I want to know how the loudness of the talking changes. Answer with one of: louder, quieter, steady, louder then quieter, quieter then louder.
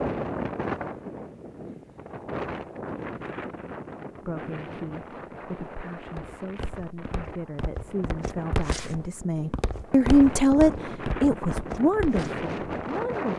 louder then quieter.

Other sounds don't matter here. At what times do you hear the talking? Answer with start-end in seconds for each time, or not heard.
4.2-13.3.